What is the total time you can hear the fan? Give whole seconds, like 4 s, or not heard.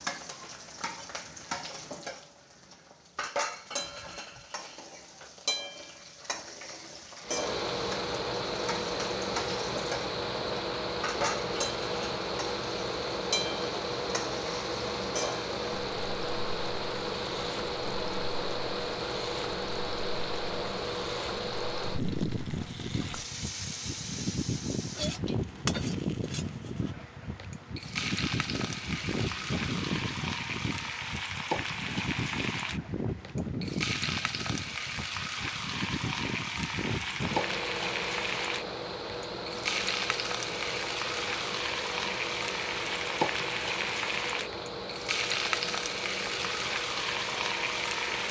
41 s.